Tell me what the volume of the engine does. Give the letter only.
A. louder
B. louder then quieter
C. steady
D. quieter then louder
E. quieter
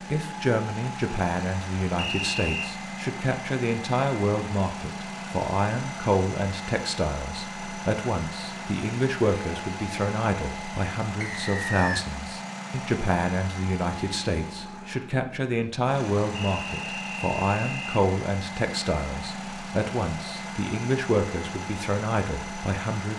C.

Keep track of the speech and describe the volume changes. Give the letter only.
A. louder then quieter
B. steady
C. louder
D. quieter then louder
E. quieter
B.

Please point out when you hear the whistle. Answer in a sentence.
The whistle can be heard from 1.9 to 2.8 s, from 11.2 to 12.1 s and from 16.4 to 18.1 s.